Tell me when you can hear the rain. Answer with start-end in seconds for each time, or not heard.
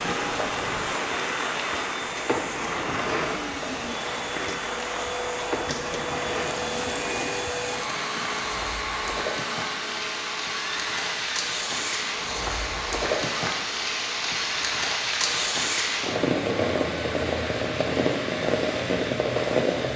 0.0-19.9.